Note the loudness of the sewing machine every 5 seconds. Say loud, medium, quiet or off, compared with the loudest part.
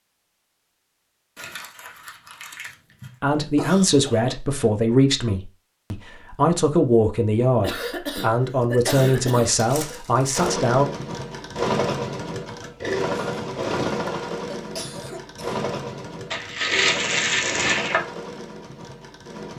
off, off, loud, medium.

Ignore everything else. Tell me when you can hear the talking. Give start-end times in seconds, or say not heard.
3.2-10.8.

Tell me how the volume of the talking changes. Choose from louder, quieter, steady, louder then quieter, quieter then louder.
steady.